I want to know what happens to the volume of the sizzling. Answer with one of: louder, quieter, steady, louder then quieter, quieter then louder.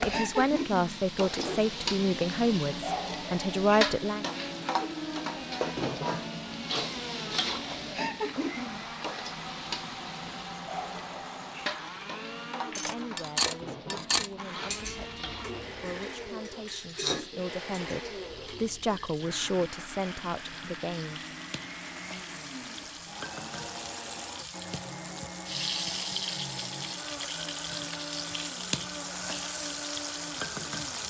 quieter then louder.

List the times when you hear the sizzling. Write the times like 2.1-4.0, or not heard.
0.0-31.0.